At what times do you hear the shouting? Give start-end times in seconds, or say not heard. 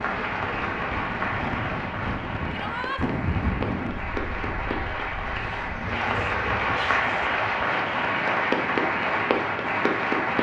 2.5-3.0, 5.8-7.2.